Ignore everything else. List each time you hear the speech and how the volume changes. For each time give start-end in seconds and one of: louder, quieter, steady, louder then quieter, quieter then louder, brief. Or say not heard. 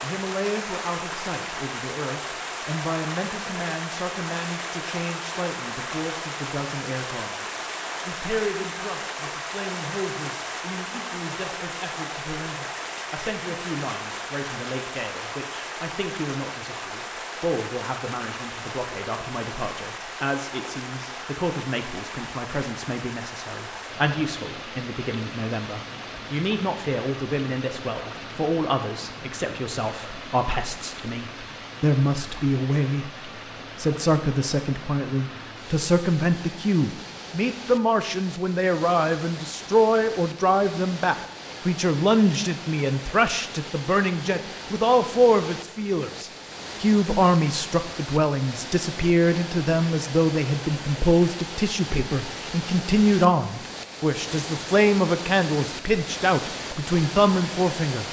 0.0-58.0 louder.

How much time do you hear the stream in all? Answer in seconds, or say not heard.
58 s.